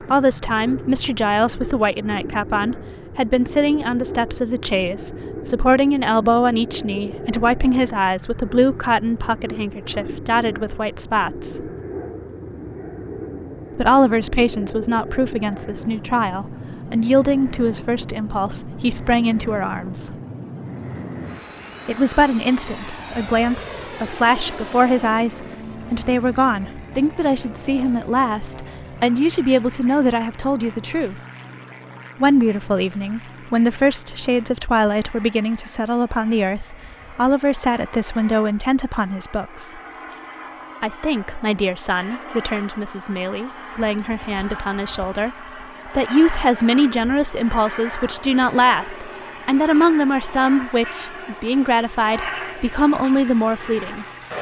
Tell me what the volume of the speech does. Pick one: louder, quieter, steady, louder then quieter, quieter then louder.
steady.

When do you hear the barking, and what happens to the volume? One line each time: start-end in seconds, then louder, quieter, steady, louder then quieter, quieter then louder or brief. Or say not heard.
not heard.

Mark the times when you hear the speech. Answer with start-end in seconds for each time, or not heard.
0.1-11.7, 13.8-20.1, 21.9-31.2, 32.2-39.7, 40.8-45.3, 46.0-54.0.